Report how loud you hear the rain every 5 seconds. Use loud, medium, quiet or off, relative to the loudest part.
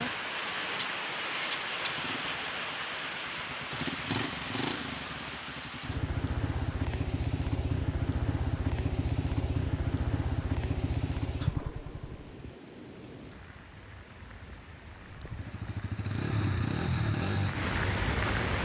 loud, medium, quiet, loud.